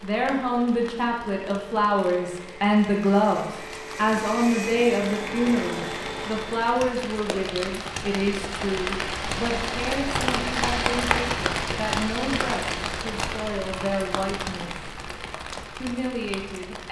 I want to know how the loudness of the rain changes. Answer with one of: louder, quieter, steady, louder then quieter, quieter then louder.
louder then quieter.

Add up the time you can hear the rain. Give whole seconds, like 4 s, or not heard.
17 s.